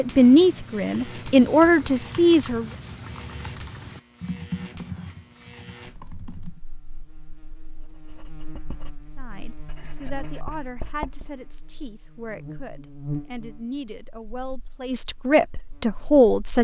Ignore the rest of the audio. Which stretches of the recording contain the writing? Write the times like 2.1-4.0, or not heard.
7.8-11.4.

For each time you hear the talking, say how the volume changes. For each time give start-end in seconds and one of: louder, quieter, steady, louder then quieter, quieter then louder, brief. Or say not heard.
0.0-2.7 brief
9.2-16.6 louder.